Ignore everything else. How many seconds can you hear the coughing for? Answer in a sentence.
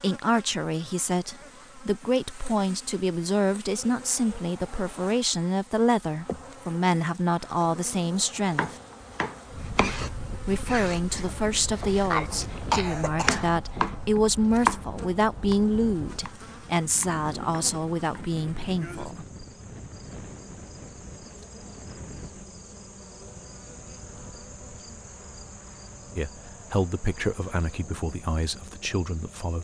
The coughing can be heard for 2 seconds in total.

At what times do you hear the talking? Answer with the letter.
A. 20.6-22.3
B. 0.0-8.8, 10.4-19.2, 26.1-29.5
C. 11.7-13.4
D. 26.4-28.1
B.